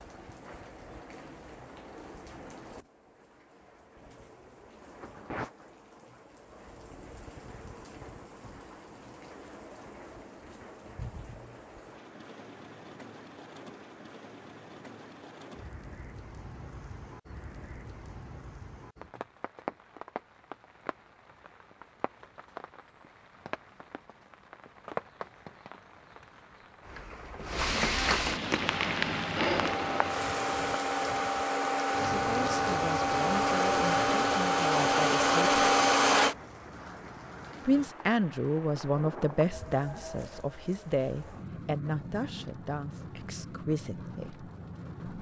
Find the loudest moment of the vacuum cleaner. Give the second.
36 s.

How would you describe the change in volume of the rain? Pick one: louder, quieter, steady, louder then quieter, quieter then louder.
louder then quieter.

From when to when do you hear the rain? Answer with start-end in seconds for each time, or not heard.
0.0-45.1.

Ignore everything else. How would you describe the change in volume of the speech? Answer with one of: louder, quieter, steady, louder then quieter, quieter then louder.
louder then quieter.